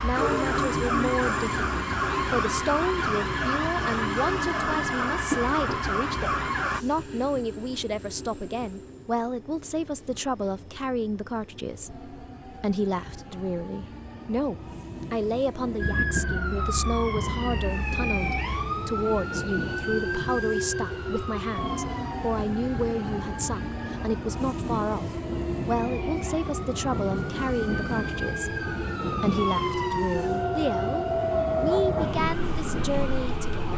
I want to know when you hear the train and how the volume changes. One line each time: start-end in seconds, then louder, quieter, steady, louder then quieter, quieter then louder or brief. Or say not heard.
0.0-33.7 quieter then louder.